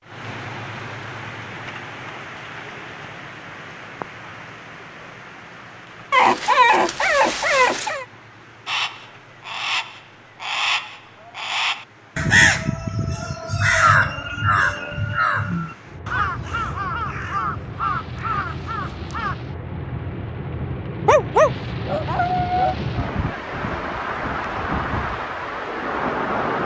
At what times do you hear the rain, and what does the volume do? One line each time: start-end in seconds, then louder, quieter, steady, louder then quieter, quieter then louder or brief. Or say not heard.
0.0-26.6 quieter then louder.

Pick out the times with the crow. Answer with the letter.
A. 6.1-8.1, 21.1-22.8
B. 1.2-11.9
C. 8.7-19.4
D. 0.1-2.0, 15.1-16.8
C.